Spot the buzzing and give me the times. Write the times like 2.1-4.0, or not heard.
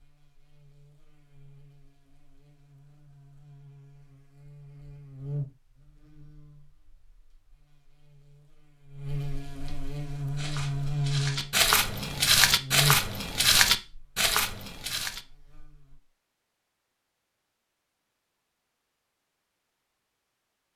0.0-16.0.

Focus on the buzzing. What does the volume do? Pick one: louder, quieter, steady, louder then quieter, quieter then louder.
louder.